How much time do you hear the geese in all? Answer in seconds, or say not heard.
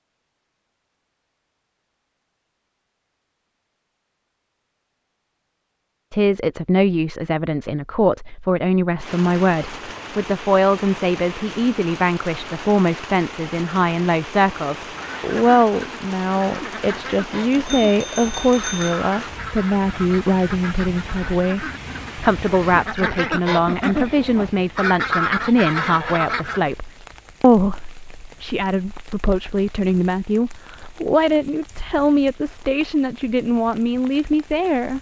12 s.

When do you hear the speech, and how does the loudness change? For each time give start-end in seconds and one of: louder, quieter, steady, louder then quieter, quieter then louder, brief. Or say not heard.
6.1-34.9 steady.